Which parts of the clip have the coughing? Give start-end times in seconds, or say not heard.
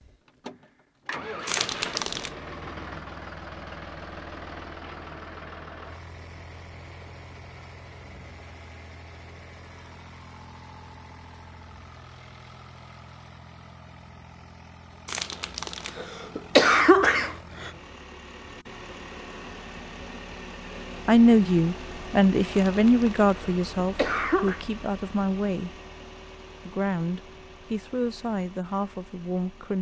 1.4-2.3, 15.1-17.7, 22.5-24.6.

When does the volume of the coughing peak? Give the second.
17 s.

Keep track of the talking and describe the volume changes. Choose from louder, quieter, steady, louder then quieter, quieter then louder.
quieter.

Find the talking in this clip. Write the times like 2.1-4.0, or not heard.
21.1-25.7, 26.6-29.7.